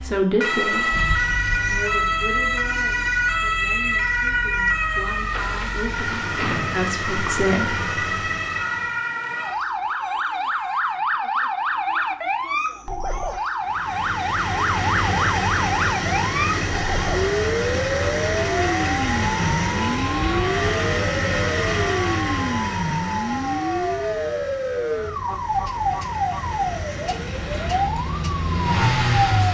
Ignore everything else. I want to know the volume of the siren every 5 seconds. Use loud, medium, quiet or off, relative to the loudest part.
loud, medium, loud, loud, loud, loud.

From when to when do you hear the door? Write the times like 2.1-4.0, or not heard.
5.2-6.8.